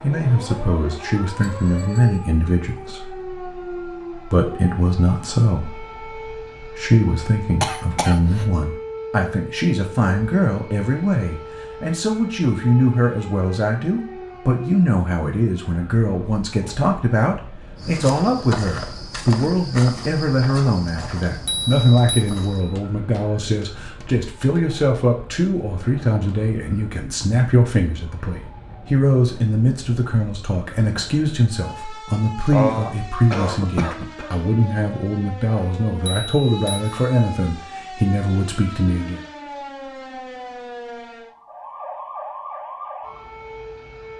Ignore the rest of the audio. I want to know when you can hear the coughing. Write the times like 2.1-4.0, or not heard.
7.6-8.4, 32.5-34.3.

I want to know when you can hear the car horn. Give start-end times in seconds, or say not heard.
not heard.